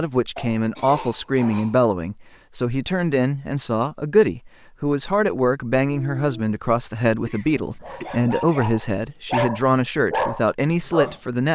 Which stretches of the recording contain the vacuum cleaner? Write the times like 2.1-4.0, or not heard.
not heard.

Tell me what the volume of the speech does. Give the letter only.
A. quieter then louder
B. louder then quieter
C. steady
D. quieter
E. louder
C.